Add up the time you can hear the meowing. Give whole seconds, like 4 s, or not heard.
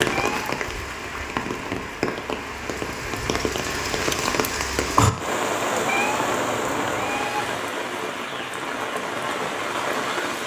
2 s.